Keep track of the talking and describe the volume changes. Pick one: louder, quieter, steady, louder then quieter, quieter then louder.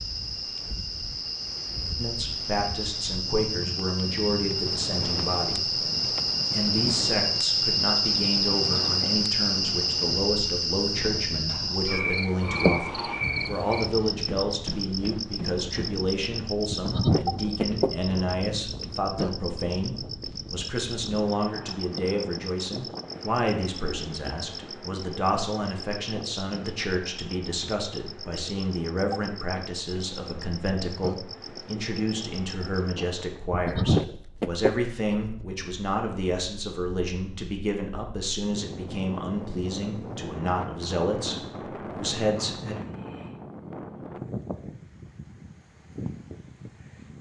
steady.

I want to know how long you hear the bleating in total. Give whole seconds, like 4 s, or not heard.
3 s.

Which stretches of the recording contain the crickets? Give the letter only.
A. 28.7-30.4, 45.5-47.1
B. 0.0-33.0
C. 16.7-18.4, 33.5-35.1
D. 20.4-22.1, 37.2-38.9
B.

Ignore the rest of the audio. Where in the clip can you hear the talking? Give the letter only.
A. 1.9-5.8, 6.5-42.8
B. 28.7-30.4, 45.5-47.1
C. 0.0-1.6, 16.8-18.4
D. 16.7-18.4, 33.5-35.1
A.